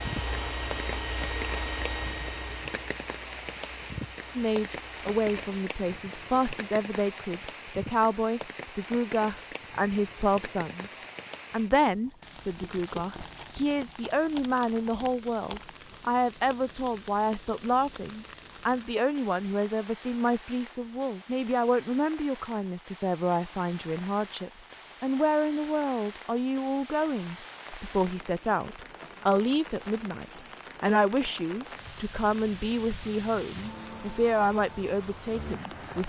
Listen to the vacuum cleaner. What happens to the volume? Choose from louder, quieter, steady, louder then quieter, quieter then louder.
quieter.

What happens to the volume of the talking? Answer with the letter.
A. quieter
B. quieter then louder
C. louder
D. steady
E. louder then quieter
D.